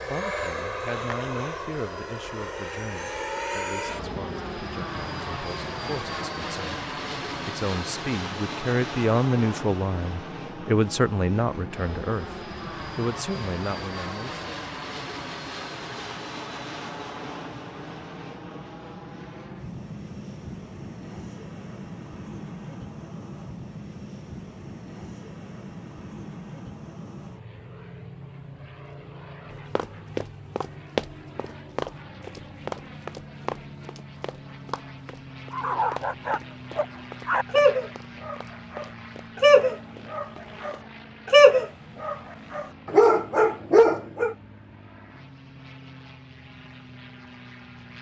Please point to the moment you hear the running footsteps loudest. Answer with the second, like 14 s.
31 s.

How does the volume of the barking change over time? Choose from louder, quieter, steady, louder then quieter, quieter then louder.
louder.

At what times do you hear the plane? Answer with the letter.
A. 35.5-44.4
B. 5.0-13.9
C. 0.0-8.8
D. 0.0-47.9
D.